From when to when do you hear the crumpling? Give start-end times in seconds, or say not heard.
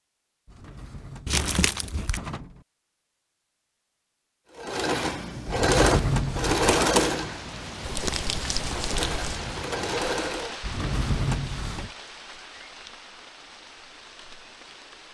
1.2-2.2, 7.8-9.4.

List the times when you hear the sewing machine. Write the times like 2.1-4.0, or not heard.
4.5-10.6.